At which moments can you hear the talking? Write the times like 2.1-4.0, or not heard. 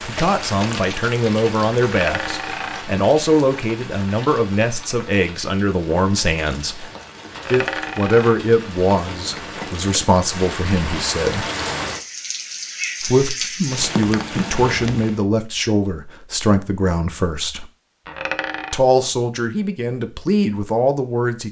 0.1-6.8, 7.5-11.4, 13.0-17.6, 18.7-21.4.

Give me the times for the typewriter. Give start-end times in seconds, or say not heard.
not heard.